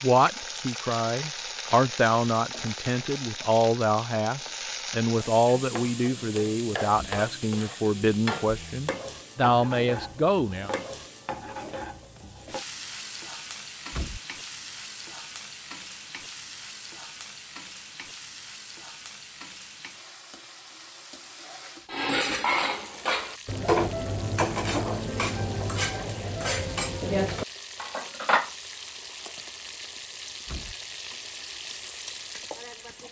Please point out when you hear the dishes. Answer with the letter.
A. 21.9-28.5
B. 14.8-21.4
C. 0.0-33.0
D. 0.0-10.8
A.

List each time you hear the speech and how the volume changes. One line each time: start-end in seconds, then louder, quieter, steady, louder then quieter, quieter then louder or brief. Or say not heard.
0.0-10.8 steady.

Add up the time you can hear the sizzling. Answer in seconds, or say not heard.
33 s.